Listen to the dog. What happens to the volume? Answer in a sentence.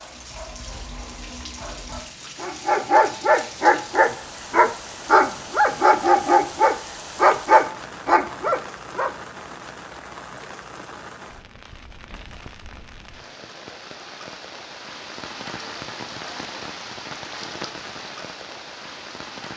The volume of the dog goes up.